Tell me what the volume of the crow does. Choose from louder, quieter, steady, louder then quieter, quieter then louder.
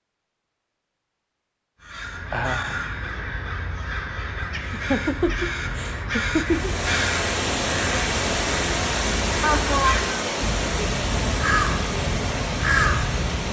louder.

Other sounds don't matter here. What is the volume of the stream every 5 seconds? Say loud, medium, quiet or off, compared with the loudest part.
off, loud, loud.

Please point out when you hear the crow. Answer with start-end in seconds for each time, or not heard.
1.8-13.4.